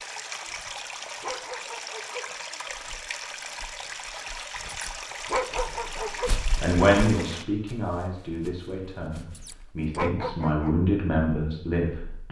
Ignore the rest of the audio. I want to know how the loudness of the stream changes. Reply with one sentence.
The loudness of the stream stays about the same.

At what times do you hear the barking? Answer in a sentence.
You can hear the barking from 0.5 to 2.2 s, from 4.5 to 6.3 s and from 9.2 to 10.8 s.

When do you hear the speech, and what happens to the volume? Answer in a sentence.
You can hear the speech from 6.6 to 12.2 s, getting quieter then louder.